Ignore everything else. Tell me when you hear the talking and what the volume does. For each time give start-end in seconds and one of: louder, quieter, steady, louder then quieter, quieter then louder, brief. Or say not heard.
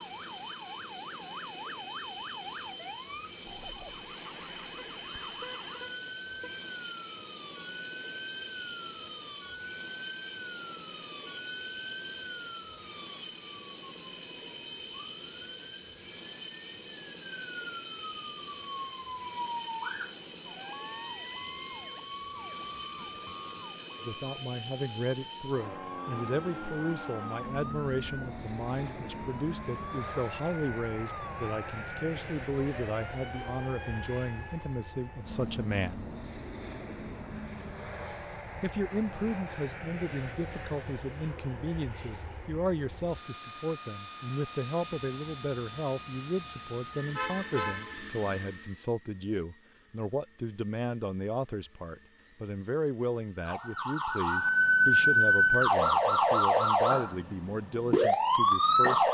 24.1-36.1 steady
38.6-59.0 steady.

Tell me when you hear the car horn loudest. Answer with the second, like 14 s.
48 s.